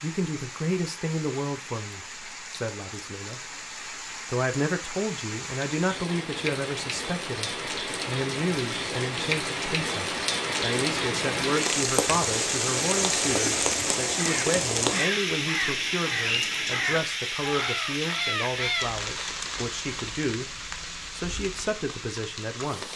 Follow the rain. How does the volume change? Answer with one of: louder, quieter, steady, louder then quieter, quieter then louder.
louder then quieter.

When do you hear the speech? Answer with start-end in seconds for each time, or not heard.
0.0-3.4, 4.3-22.9.